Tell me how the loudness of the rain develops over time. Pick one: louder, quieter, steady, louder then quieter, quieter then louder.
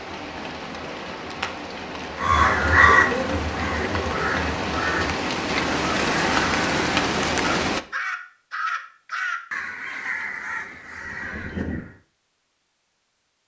louder.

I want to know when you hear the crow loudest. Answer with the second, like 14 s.
3 s.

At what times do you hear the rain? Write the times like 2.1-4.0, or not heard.
0.0-7.8.